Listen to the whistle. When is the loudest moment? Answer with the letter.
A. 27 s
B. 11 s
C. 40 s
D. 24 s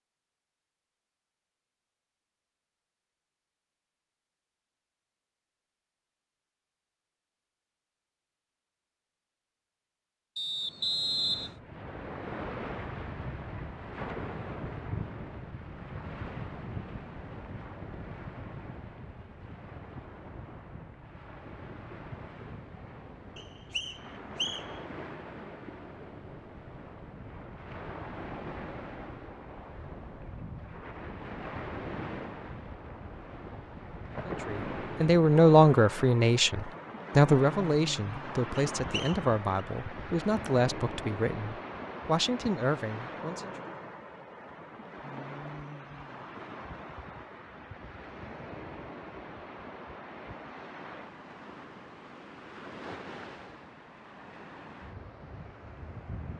B.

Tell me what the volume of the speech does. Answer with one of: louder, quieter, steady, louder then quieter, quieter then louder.
quieter.